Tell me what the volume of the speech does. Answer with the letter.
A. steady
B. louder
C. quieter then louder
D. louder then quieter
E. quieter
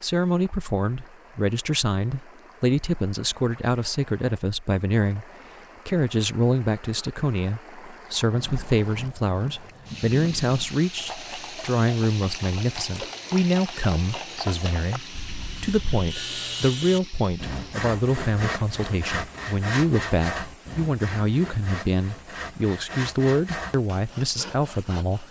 A.